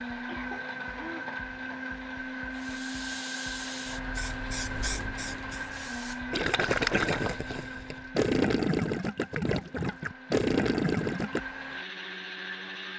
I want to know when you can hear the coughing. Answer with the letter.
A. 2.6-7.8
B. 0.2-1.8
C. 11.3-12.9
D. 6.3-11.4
B.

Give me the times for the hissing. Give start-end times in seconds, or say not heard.
2.5-8.2.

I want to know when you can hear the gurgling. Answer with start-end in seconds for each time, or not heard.
6.3-11.4.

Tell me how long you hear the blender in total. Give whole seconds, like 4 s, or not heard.
13 s.